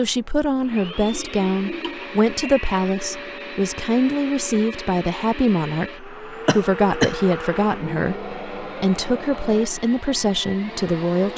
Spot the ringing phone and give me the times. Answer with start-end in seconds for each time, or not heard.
not heard.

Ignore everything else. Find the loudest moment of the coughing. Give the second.
7 s.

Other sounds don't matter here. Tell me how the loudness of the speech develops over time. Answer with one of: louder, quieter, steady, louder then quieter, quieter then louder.
steady.